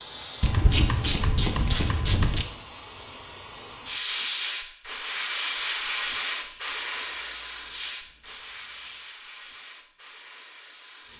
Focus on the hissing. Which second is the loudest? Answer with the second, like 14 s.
6 s.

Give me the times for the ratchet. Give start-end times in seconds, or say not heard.
0.4-2.5, 6.4-9.1.